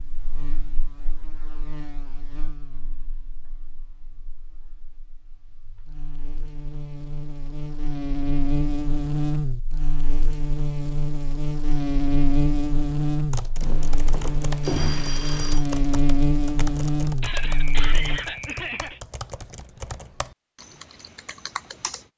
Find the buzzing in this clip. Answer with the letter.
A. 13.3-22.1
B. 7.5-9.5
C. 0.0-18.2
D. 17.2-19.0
C.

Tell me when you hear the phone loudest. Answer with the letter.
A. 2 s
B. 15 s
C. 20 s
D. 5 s
B.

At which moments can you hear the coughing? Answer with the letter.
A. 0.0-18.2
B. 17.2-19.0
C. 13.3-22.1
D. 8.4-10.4
B.